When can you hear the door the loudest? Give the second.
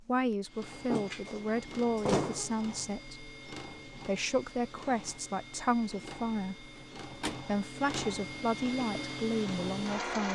2 s.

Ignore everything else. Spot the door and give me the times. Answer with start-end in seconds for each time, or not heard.
0.8-2.6, 6.8-7.4.